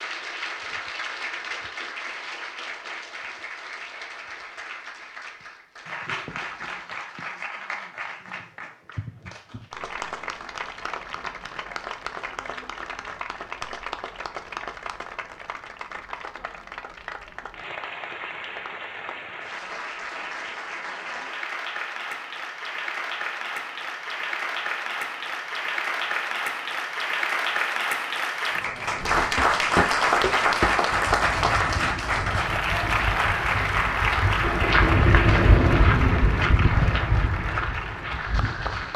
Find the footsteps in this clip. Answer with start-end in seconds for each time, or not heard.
28.9-38.9.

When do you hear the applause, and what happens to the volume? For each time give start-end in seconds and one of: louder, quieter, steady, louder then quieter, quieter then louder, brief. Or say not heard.
0.0-38.9 louder.